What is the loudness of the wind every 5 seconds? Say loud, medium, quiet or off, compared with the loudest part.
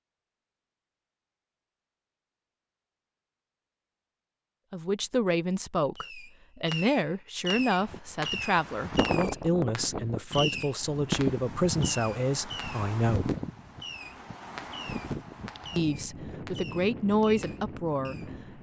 off, loud, loud, medium.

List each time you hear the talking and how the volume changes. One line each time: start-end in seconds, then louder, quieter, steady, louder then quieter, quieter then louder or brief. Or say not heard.
4.7-13.3 steady
15.8-18.3 brief.